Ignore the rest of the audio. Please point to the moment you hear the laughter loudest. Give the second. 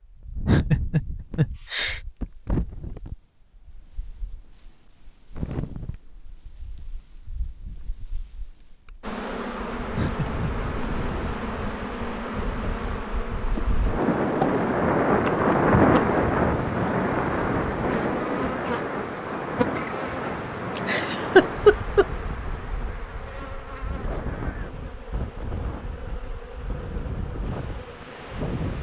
22 s.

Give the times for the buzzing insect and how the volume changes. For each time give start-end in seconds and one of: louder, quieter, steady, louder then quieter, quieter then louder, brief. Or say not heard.
9.0-28.7 quieter.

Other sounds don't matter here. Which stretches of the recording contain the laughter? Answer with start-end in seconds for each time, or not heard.
0.5-2.0, 9.9-10.4, 20.8-22.1.